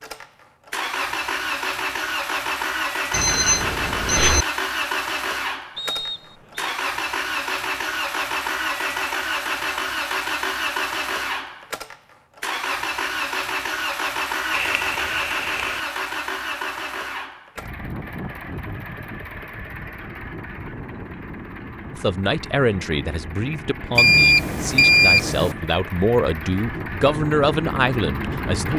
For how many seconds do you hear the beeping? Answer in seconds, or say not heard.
4 s.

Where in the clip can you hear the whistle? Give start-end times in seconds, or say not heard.
5.8-6.7.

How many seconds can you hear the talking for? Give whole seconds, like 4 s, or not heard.
7 s.